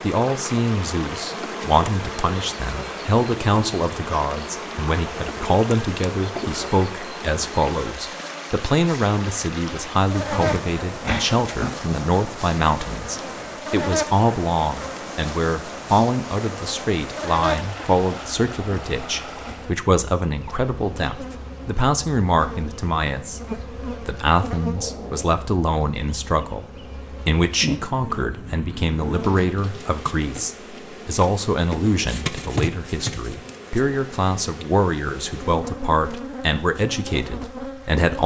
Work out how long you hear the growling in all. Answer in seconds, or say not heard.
2 s.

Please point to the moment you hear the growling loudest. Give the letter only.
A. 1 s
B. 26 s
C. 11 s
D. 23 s
C.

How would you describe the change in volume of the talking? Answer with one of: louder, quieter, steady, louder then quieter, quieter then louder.
steady.